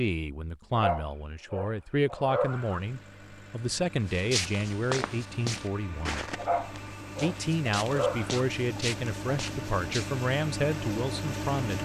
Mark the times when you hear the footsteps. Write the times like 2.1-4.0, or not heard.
4.0-10.2.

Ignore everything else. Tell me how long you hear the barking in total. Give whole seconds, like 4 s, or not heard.
4 s.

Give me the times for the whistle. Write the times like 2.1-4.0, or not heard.
not heard.